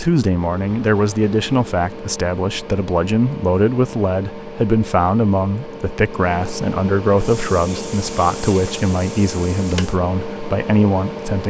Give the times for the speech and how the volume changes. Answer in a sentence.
The speech can be heard from 0.0 to 11.4 s, at a steady volume.